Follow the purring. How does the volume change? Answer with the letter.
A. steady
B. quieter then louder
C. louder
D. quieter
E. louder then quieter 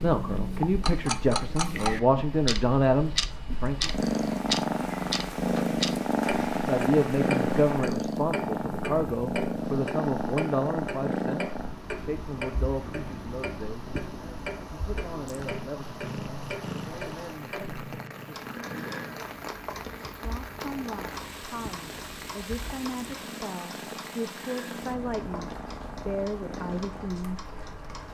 D.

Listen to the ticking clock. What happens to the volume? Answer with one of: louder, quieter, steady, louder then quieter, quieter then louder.
quieter.